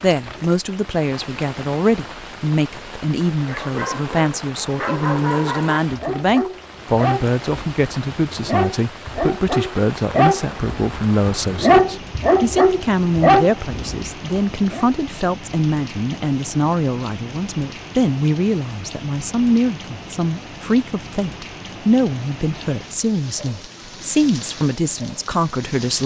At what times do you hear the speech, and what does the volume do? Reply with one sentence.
You can hear the speech from 0.0 to 26.0 s, at a steady volume.